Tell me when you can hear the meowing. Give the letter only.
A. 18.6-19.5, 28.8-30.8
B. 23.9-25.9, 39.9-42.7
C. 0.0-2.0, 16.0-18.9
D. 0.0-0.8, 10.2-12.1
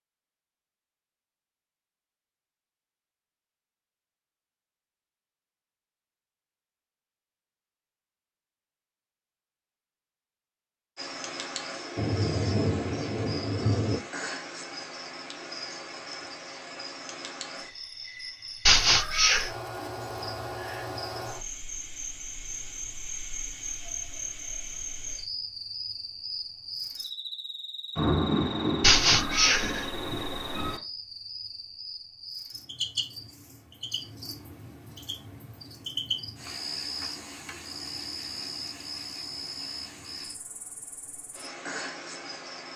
A.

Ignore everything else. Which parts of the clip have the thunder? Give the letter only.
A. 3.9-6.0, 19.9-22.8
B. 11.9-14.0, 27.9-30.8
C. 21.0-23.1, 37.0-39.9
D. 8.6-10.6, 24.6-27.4
B.